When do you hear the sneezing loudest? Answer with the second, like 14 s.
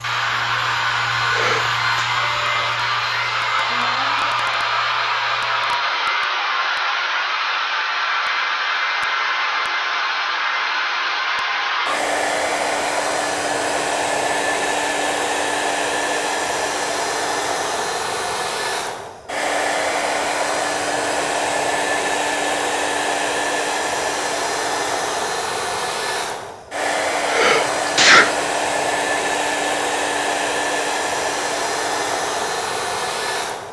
28 s.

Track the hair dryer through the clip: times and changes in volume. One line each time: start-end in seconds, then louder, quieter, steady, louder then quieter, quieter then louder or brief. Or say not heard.
0.0-33.6 steady.